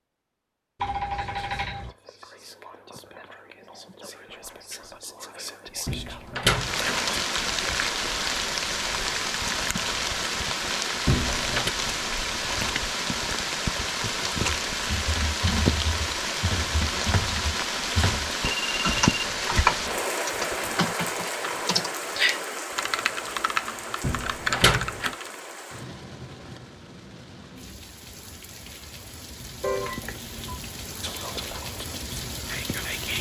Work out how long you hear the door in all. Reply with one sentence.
You can hear the door for 3 seconds altogether.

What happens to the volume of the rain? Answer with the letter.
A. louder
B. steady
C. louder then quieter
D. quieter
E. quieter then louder
D.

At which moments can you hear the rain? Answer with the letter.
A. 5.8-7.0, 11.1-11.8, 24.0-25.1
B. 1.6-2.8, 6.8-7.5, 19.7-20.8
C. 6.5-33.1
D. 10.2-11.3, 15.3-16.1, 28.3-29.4
C.